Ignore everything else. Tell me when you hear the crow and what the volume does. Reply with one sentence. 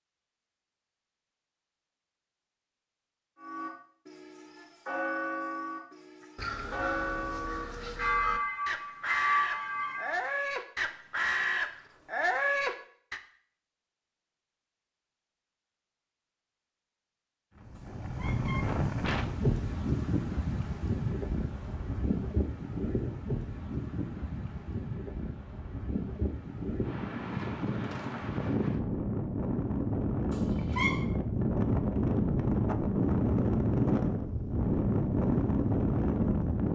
You can hear the crow from 6.2 to 13.2 s, getting louder.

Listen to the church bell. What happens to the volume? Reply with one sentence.
The volume of the church bell goes up.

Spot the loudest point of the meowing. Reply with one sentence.
The loudest moment of the meowing is at 31 seconds.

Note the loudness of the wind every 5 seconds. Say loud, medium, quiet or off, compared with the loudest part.
off, off, off, loud, medium, medium, loud, loud.